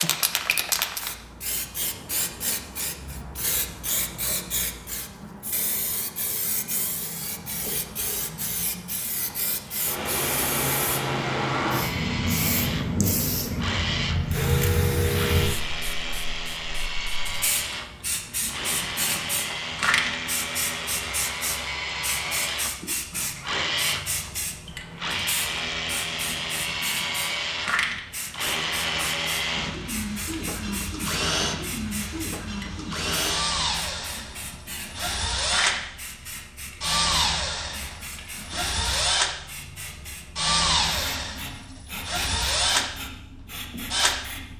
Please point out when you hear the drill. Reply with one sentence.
You can hear the drill from 9.7 to 44.5 s.